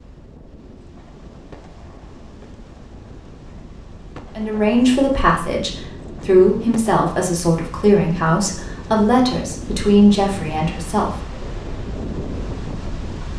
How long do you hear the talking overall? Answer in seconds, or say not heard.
7 s.